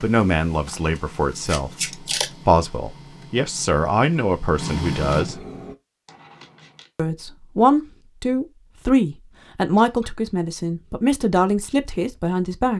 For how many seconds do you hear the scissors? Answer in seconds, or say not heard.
2 s.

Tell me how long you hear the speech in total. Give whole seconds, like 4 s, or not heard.
11 s.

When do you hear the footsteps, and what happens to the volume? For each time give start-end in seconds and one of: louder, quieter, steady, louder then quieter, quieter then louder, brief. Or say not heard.
not heard.